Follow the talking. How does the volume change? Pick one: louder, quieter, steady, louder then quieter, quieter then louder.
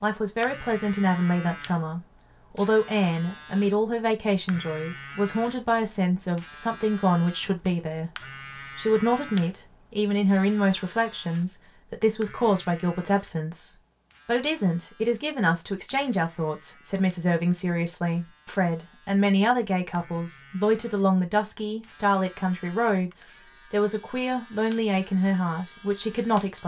steady.